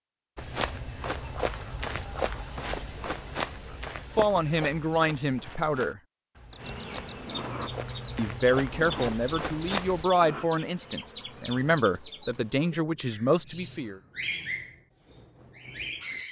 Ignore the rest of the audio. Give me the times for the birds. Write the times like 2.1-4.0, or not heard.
6.5-16.2.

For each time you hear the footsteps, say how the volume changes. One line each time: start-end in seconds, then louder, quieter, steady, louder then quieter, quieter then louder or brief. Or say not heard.
0.3-10.1 quieter then louder.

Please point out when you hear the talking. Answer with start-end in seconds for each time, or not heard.
4.2-6.0, 8.2-14.0.